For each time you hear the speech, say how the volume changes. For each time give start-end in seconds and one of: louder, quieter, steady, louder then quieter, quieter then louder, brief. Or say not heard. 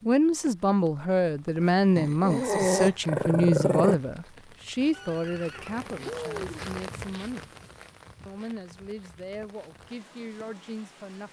0.0-7.5 quieter
8.2-11.2 brief.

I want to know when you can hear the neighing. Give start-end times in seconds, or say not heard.
4.9-6.6.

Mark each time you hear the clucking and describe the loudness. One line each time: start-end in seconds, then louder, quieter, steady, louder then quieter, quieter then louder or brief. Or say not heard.
not heard.